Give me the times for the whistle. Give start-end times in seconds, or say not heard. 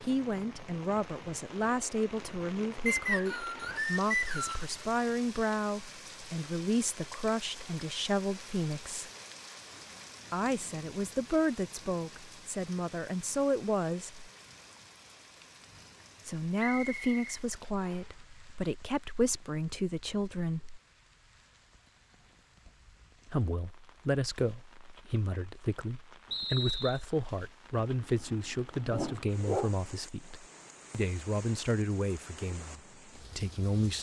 2.9-4.7, 16.6-18.1, 26.3-27.1.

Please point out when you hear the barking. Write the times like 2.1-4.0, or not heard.
27.9-29.8.